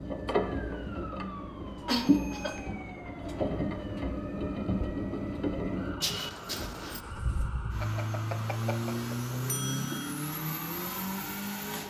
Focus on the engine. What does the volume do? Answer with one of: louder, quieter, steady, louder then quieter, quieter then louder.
steady.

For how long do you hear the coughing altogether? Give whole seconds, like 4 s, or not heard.
2 s.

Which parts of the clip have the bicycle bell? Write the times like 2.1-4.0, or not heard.
2.0-2.7, 7.8-10.2.